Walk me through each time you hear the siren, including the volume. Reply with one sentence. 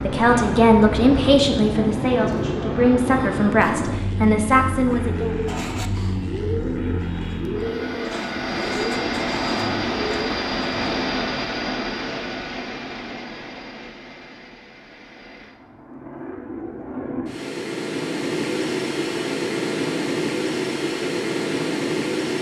The siren can't be heard in this clip.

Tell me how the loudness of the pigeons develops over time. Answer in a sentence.
The loudness of the pigeons stays about the same.